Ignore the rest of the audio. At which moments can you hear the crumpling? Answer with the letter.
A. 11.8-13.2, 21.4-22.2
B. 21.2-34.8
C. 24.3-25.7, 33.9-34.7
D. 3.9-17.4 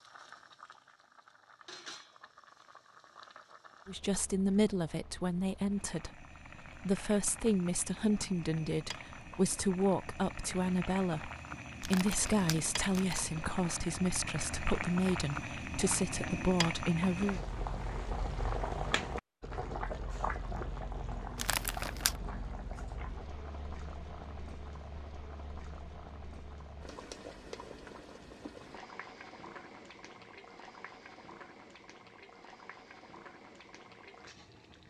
A.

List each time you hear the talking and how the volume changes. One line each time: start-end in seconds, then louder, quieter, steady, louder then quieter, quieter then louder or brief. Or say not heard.
3.9-17.4 steady.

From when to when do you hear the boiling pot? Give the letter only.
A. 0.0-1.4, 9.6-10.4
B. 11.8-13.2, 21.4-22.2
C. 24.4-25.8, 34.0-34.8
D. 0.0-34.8
D.